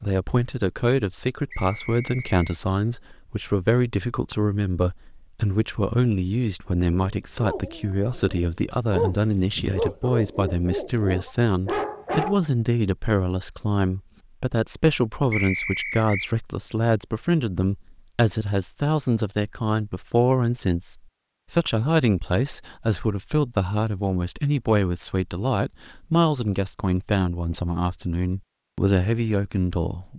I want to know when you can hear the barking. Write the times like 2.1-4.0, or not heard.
7.0-12.4.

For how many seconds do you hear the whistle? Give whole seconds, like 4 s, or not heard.
2 s.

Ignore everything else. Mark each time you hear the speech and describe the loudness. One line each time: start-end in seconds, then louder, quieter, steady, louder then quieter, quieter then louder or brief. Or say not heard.
0.0-30.1 steady.